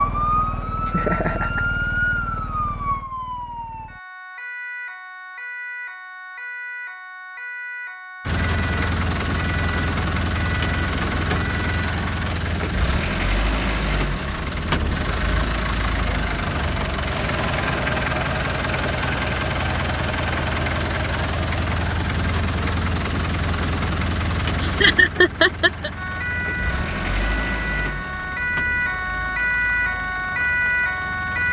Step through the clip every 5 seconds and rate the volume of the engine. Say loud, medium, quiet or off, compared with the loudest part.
off, loud, loud, loud, loud, medium, quiet.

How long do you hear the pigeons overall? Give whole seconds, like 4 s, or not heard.
not heard.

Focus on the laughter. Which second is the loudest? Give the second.
25 s.